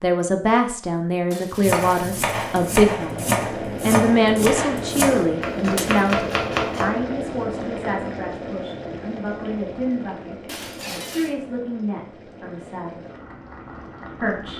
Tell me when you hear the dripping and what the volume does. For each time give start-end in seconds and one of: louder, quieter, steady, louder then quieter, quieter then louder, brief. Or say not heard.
not heard.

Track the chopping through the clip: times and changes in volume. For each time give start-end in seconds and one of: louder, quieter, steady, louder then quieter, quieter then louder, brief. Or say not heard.
1.6-6.9 steady.